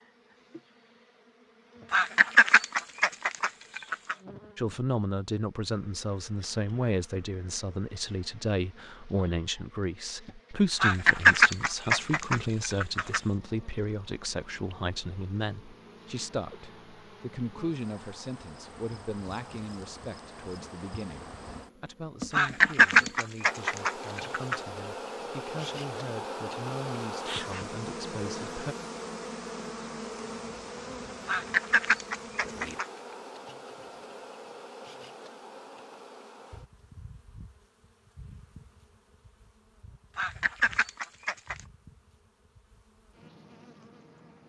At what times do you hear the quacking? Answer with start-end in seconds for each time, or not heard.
1.9-4.2, 10.8-13.2, 22.3-24.6, 31.2-32.9, 40.1-41.6.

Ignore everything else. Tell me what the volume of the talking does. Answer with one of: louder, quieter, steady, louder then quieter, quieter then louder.
quieter.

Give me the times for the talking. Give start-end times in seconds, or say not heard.
4.5-28.8.